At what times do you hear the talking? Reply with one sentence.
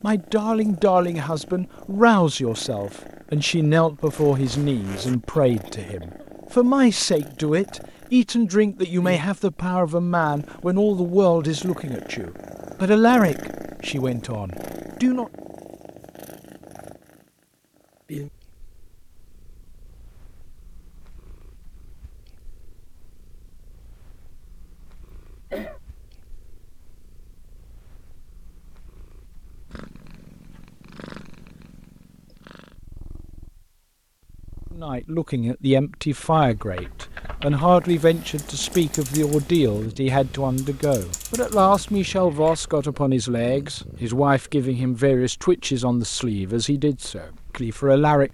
The talking can be heard from 0.0 to 15.3 s and from 34.8 to 48.2 s.